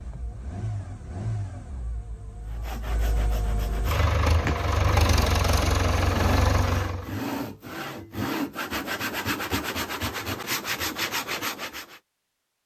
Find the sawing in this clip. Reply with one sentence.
The sawing can be heard from 2.5 to 12.0 s.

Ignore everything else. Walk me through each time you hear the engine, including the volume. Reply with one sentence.
The engine can be heard from 0.0 to 7.1 s, getting quieter then louder.